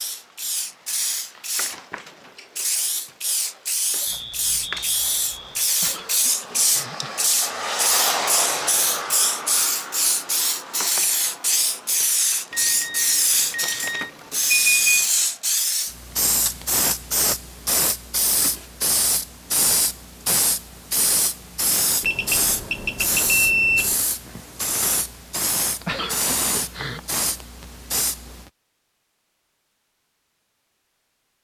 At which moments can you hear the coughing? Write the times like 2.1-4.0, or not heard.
5.8-7.2, 25.8-27.0.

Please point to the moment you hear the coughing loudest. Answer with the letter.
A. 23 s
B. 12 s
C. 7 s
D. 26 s
D.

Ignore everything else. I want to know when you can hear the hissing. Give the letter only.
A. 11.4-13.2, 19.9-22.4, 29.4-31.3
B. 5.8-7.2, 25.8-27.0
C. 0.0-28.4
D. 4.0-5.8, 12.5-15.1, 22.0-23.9
C.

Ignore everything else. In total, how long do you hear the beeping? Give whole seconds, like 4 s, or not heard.
6 s.